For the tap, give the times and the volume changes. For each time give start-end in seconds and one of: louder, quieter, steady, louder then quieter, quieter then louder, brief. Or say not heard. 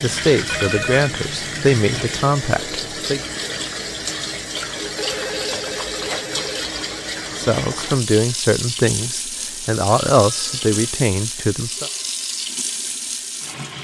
0.0-13.8 steady.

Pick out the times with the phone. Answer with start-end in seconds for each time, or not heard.
0.5-1.1, 5.0-6.7, 9.4-10.8.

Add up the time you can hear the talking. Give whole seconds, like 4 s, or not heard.
8 s.